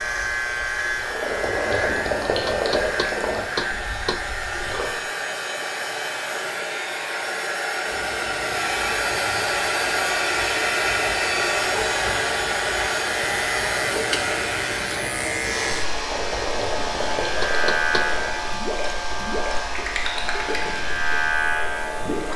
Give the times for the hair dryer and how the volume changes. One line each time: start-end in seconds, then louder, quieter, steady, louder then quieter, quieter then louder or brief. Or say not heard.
0.0-22.3 louder then quieter.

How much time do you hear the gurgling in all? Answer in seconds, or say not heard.
11 s.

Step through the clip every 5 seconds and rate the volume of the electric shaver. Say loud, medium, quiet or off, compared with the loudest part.
loud, medium, loud, loud, loud.